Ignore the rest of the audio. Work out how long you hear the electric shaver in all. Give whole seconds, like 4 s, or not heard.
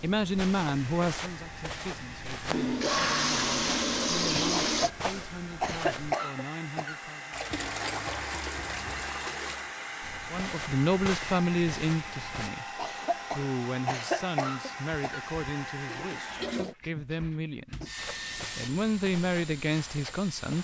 not heard.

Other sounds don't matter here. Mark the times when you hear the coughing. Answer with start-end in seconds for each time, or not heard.
4.6-7.0, 12.8-15.3.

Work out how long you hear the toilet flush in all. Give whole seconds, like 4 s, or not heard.
7 s.